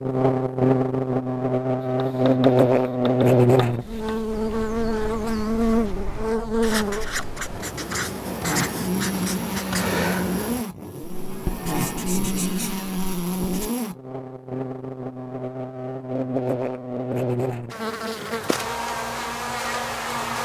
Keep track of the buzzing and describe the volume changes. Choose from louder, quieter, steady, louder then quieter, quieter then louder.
quieter.